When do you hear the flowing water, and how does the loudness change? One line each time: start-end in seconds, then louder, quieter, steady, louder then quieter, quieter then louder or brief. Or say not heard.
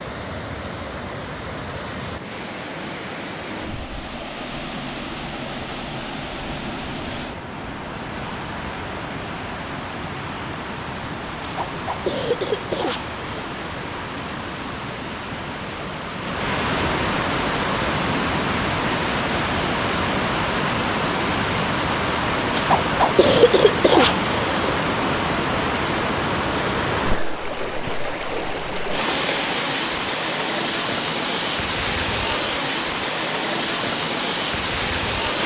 0.0-35.4 louder.